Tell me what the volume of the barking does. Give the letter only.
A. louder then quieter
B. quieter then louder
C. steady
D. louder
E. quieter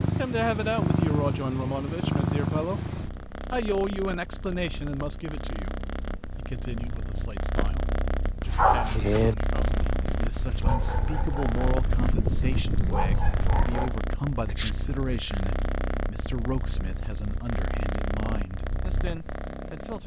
B.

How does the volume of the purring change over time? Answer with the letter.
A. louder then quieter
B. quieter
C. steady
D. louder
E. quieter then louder
B.